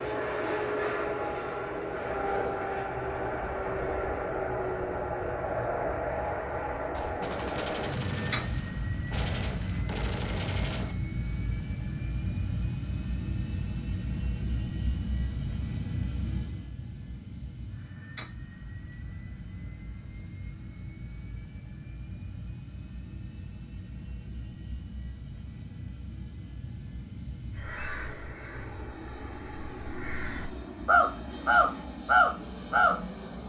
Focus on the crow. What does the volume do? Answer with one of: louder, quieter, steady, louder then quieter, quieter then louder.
quieter then louder.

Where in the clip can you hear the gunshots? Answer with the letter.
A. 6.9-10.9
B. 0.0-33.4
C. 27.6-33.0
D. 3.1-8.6
A.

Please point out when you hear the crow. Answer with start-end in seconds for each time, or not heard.
27.6-33.0.